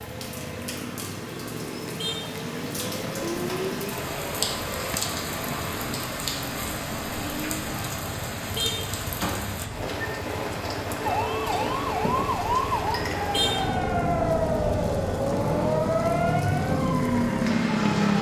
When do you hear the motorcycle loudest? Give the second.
18 s.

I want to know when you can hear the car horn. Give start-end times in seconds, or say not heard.
1.9-2.4, 8.6-9.0, 13.3-13.8.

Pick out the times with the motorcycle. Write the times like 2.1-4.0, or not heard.
0.0-18.1.